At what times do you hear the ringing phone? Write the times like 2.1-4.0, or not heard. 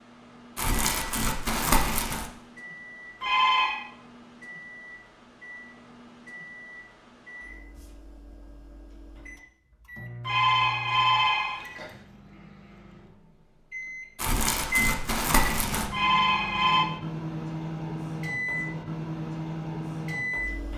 3.2-3.8, 10.2-11.9, 15.9-16.9.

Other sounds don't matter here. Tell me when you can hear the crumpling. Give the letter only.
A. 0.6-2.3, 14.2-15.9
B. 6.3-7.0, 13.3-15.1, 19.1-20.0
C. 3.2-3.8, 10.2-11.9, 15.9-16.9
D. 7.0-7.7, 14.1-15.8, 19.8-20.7
A.